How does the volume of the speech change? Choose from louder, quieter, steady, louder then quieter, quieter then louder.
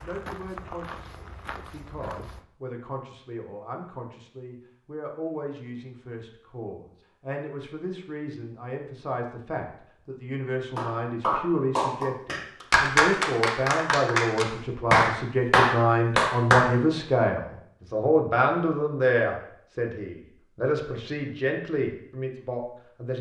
louder.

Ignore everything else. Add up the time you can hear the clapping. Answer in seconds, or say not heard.
6 s.